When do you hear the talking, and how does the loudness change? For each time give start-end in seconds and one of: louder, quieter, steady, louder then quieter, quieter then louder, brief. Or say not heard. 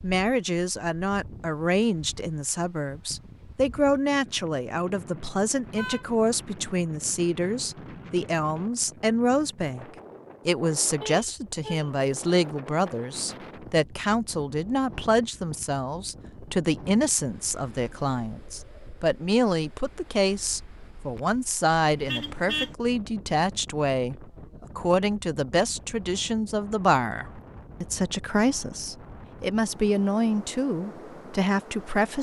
0.0-9.8 steady
10.4-32.1 steady.